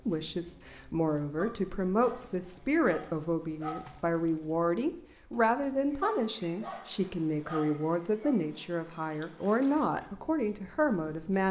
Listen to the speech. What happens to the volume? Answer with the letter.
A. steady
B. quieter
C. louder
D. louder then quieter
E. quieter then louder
A.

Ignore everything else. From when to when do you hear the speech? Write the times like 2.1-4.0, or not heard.
0.1-11.4.